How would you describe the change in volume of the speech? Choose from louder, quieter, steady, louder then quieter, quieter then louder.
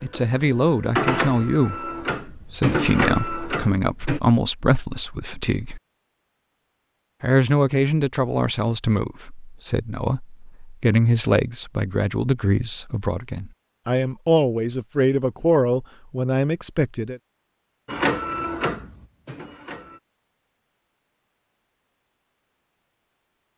steady.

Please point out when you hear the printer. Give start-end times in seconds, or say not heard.
0.0-4.2, 17.9-20.0.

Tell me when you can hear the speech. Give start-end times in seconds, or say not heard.
0.0-5.8, 7.2-17.2.